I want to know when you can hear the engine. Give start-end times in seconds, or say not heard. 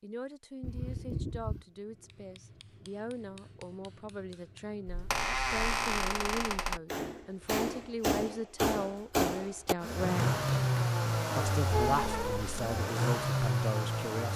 9.8-14.3.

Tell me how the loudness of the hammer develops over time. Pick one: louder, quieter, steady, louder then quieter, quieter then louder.
louder.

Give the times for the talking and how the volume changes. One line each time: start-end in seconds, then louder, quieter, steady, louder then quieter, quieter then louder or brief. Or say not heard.
0.0-10.3 louder
11.3-14.3 brief.